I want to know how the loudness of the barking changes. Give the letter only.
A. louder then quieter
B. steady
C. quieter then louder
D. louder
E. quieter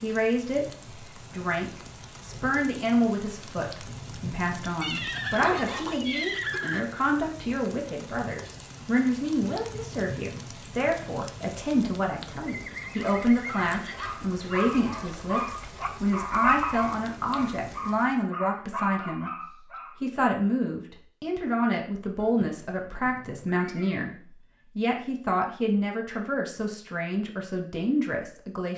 A.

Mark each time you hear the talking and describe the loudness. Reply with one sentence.
You can hear the talking from 0.0 to 19.4 s, at a steady volume; and from 20.0 to 28.7 s, at a steady volume.